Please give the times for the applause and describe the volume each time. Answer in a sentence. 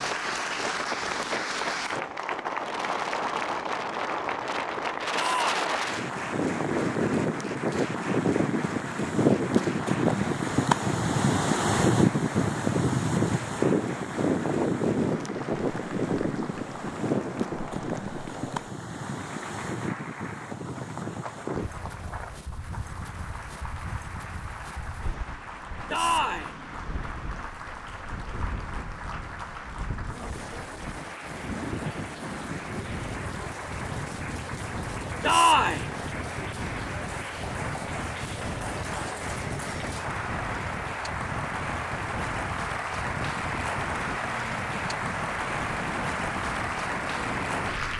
You can hear the applause from 0.0 to 47.9 s, getting quieter then louder.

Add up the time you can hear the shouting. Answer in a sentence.
The shouting can be heard for 2 seconds in total.